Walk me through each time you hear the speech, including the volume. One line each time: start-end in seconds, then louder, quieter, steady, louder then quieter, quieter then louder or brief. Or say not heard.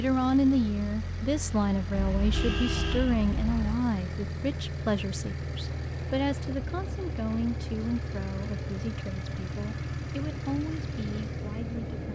0.0-12.1 quieter.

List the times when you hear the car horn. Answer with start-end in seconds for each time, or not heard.
1.9-3.8.